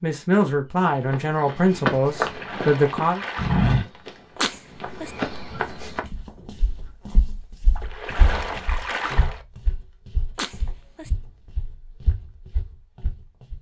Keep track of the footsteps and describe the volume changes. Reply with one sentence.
The loudness of the footsteps goes down.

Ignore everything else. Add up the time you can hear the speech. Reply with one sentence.
You can hear the speech for 3 seconds altogether.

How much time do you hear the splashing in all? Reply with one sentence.
The splashing can be heard for 3 seconds in total.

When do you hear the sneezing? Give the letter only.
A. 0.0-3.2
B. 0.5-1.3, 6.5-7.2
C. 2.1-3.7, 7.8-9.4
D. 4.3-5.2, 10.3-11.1
D.